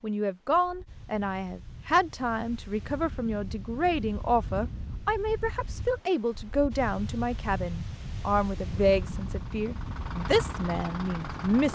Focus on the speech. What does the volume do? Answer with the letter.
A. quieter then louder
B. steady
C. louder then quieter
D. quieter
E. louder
B.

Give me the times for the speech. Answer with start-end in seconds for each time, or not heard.
0.0-11.6.